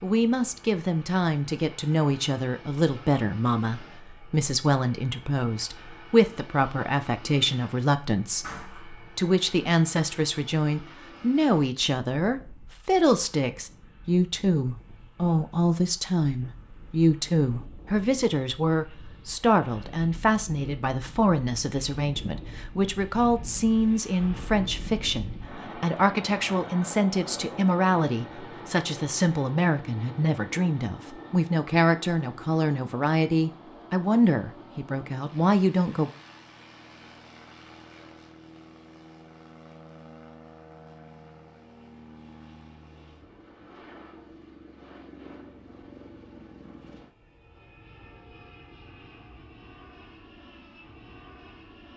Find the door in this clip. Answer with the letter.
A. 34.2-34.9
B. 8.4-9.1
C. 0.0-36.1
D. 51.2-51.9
B.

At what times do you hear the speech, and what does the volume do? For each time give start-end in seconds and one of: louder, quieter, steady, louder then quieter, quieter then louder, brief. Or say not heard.
0.0-36.1 steady.